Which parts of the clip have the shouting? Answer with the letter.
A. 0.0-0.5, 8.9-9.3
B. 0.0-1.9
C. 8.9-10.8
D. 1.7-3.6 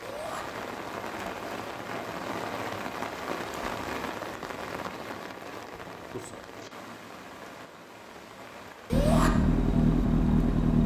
A.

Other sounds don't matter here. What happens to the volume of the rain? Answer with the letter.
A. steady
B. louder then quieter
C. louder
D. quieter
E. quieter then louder
D.